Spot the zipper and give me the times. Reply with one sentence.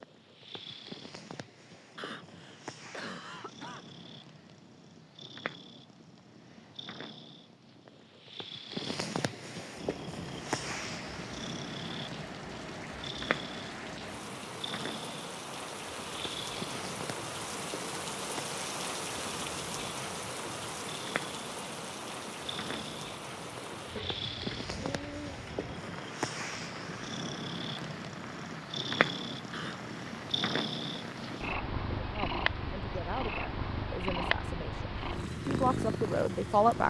The zipper can't be heard in this clip.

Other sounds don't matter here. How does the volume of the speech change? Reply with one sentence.
The loudness of the speech goes up.